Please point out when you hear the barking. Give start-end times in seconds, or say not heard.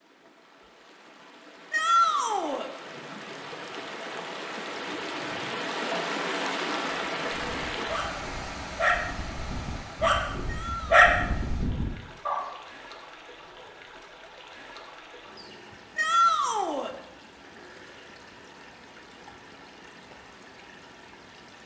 7.3-12.4.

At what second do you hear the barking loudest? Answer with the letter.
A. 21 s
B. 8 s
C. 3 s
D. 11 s
D.